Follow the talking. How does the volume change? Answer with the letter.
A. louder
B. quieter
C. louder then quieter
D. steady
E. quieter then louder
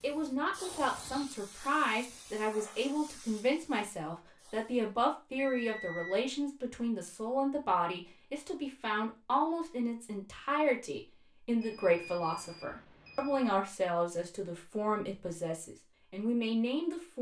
D.